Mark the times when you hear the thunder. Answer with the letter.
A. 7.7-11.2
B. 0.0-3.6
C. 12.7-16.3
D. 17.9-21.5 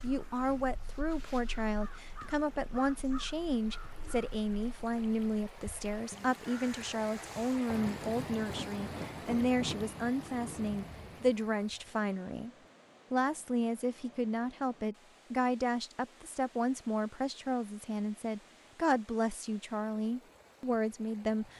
A.